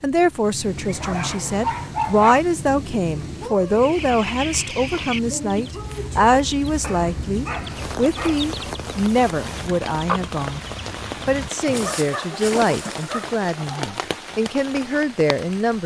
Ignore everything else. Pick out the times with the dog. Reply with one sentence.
The dog can be heard from 0.8 to 2.4 s, from 6.8 to 8.6 s and from 11.7 to 13.4 s.